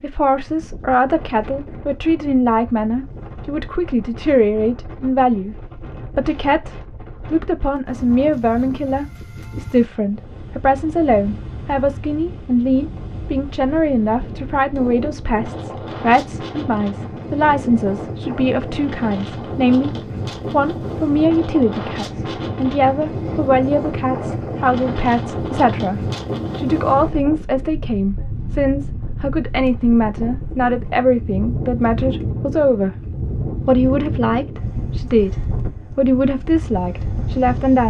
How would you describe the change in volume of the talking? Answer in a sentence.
The loudness of the talking stays about the same.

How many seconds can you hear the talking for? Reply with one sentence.
The talking can be heard for 38 seconds in total.